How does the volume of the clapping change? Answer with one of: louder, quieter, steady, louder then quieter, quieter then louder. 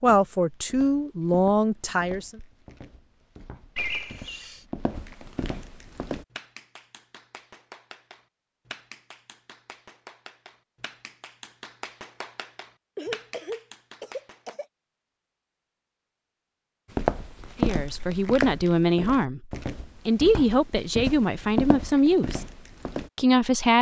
louder.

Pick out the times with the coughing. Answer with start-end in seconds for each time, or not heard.
3.8-4.6, 12.9-14.7.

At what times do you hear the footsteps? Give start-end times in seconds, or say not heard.
0.0-6.2, 16.9-23.1.